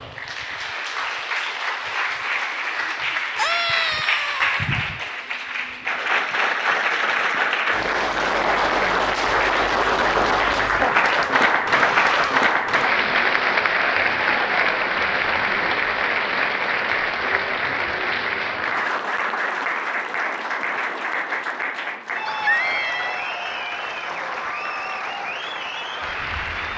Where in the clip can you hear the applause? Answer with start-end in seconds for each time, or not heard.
0.0-26.7.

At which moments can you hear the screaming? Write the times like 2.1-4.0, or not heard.
3.4-4.7, 11.7-12.4, 22.2-23.2.